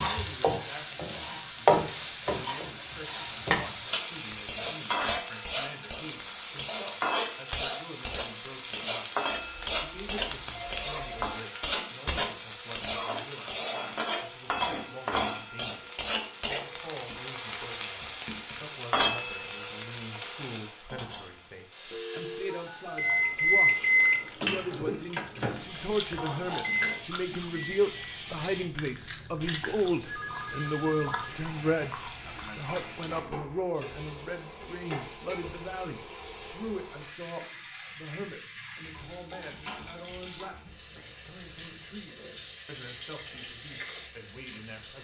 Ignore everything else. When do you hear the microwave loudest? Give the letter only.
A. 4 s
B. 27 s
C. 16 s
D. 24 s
D.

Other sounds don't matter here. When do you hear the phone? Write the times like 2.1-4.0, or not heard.
9.3-11.3, 21.9-23.4, 30.1-31.3.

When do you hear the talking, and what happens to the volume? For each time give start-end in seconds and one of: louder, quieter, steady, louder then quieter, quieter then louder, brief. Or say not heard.
0.0-44.9 louder then quieter.